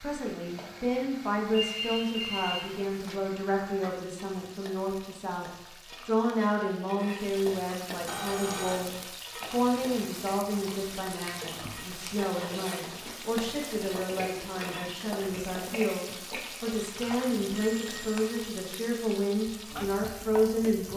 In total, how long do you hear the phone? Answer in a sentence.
You can hear the phone for 3 seconds altogether.